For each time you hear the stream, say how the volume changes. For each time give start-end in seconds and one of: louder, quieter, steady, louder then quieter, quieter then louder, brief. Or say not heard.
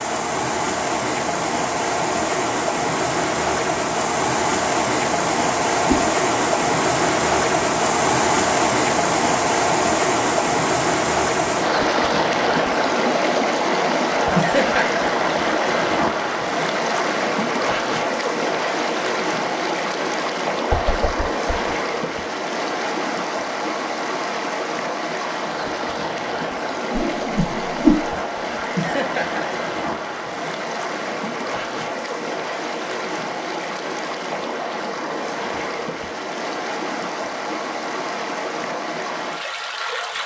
0.0-40.2 quieter.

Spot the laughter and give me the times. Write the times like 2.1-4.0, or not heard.
14.3-15.1, 28.8-29.5.